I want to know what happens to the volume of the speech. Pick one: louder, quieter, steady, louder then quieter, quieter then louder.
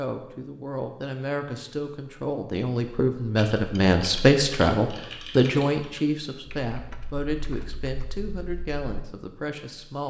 louder then quieter.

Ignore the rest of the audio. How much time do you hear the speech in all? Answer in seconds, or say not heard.
10 s.